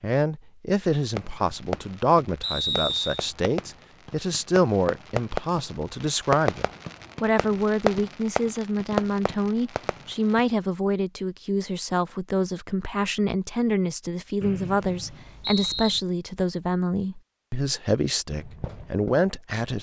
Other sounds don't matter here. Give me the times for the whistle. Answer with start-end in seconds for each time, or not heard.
2.4-3.2, 14.4-16.0.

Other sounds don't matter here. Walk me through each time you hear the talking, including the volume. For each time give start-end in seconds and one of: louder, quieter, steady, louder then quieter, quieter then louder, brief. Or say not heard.
0.0-19.7 steady.